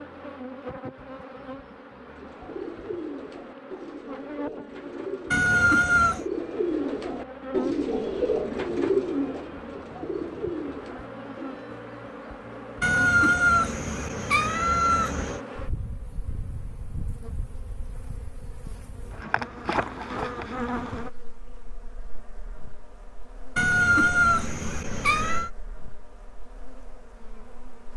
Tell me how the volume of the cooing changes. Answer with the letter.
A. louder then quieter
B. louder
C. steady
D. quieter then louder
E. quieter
A.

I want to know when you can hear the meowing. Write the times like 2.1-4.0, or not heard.
5.3-6.2, 12.8-15.4, 23.6-25.5.